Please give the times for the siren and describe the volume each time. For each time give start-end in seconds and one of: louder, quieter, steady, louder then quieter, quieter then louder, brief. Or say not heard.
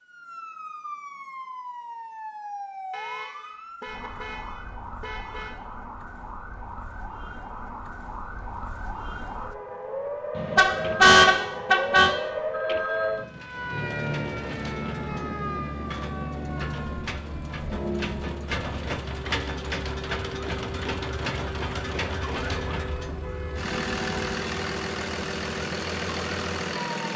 0.0-26.9 louder then quieter.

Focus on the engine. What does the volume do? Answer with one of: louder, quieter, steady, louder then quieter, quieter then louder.
louder.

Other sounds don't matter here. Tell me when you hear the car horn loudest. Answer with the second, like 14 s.
11 s.